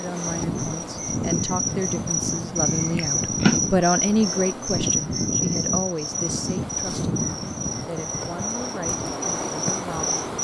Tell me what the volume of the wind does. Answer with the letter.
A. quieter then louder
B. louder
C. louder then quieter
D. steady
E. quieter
D.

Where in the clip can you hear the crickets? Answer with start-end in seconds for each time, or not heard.
0.0-10.3.